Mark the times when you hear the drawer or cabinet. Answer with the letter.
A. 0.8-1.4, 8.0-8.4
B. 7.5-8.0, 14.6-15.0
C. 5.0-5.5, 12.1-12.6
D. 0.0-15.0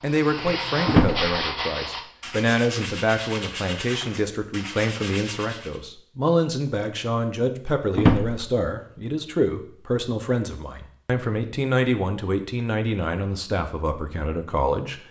A.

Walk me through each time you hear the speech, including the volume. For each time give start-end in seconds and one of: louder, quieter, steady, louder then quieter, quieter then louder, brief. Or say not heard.
0.0-15.0 steady.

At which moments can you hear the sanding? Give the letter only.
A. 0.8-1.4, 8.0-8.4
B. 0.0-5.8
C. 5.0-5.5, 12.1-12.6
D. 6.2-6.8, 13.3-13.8
B.